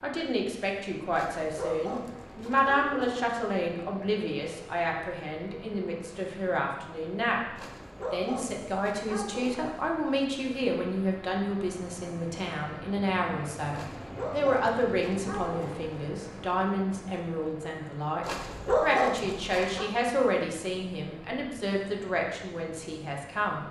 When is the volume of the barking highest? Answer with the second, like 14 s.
19 s.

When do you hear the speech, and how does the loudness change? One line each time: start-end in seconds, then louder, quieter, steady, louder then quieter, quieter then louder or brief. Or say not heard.
0.0-23.6 steady.